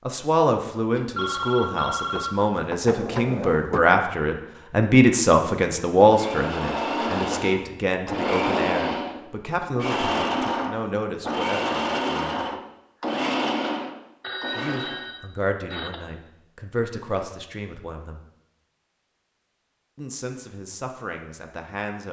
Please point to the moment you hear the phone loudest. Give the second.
1 s.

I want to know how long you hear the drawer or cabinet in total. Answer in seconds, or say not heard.
2 s.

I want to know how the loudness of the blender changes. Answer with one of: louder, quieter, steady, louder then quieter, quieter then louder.
steady.